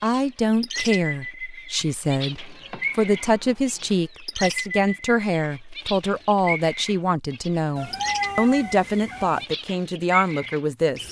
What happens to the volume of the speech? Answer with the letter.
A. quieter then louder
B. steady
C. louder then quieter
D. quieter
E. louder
B.